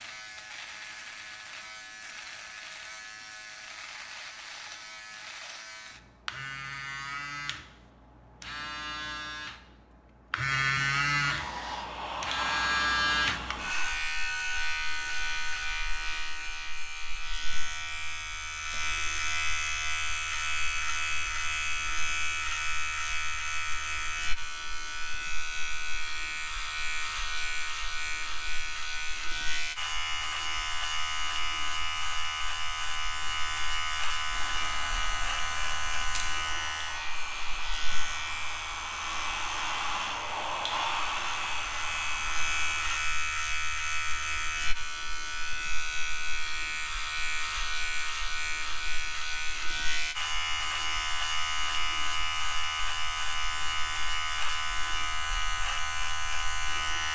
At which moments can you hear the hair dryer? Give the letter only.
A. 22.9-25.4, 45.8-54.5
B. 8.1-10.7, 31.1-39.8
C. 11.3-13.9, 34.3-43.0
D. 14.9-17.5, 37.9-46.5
C.